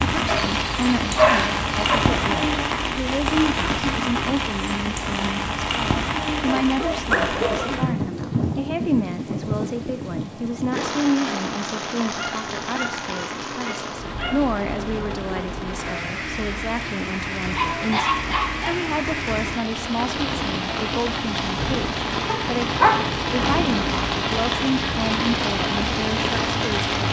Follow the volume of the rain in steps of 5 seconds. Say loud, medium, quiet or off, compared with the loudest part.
loud, loud, medium, medium, loud, loud.